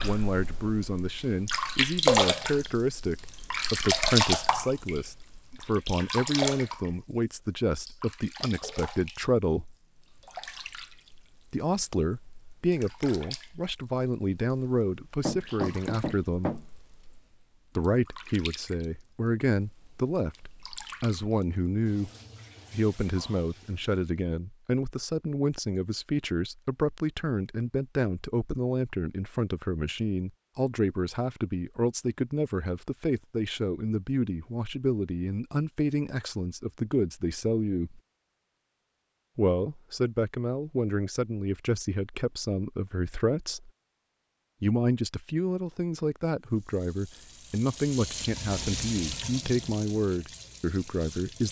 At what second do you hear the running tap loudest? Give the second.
2 s.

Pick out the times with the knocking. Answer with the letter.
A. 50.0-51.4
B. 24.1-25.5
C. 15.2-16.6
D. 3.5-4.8
C.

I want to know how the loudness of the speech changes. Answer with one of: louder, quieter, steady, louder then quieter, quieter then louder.
steady.